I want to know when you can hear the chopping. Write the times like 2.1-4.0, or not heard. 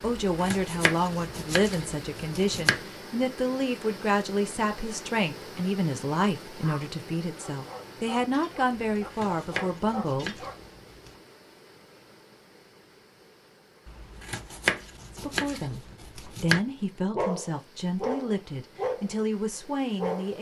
0.2-2.8, 8.9-11.2, 13.8-16.6.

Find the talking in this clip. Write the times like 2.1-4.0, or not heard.
0.0-10.3, 15.1-20.3.